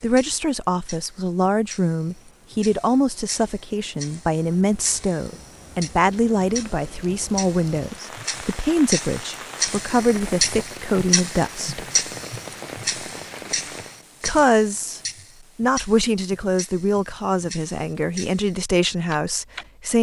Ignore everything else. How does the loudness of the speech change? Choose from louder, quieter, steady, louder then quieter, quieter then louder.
steady.